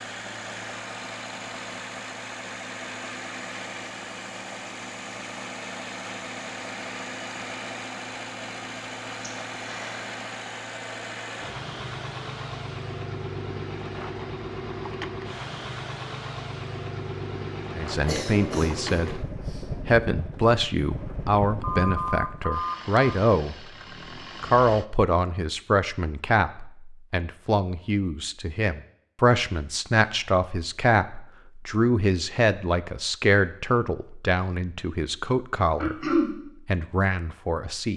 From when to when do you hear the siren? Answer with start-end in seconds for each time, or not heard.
not heard.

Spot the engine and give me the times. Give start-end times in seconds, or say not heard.
0.0-24.9.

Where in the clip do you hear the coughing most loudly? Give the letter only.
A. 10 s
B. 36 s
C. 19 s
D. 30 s
B.